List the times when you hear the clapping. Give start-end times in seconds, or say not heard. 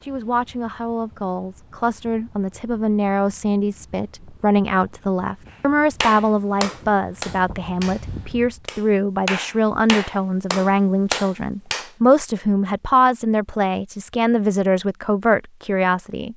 6.0-11.9.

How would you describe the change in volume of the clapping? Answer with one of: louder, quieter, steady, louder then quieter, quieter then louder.
quieter then louder.